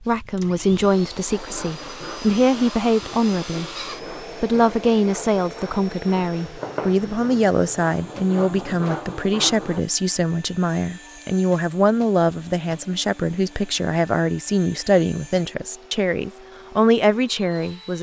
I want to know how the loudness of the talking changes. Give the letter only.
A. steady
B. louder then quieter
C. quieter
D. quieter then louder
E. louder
A.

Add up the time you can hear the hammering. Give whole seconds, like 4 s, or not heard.
not heard.